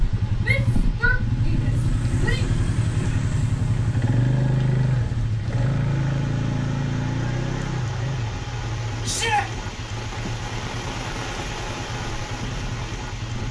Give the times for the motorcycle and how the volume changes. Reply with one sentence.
You can hear the motorcycle from 0.0 to 13.4 s, getting quieter.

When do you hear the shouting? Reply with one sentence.
You can hear the shouting from 0.4 to 2.5 s and from 9.0 to 9.4 s.